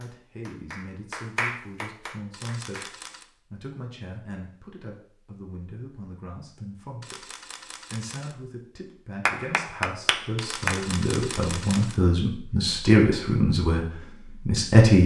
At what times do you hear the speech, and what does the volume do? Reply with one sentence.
You can hear the speech from 0.0 to 15.0 s, getting louder.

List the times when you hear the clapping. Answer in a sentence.
The clapping can be heard from 0.0 to 3.0 s and from 9.2 to 10.8 s.